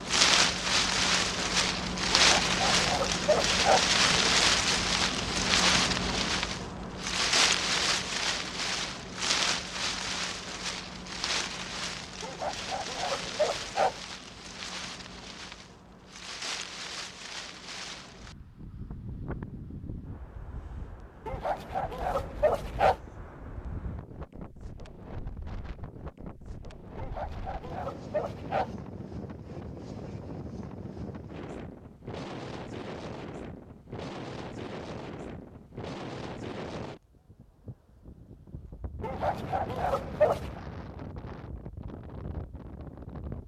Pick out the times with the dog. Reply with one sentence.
The dog can be heard from 2.1 to 3.9 s, from 12.2 to 14.0 s, from 21.2 to 22.9 s, from 26.9 to 28.8 s and from 39.0 to 40.6 s.